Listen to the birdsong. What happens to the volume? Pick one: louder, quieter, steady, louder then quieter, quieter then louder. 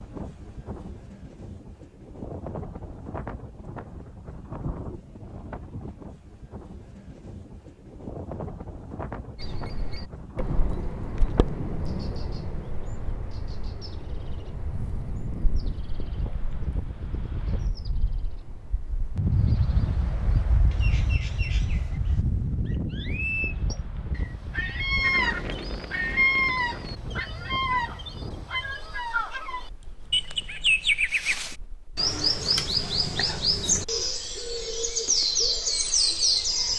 quieter then louder.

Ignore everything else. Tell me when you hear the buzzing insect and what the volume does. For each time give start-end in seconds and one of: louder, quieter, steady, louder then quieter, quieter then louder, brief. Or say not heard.
not heard.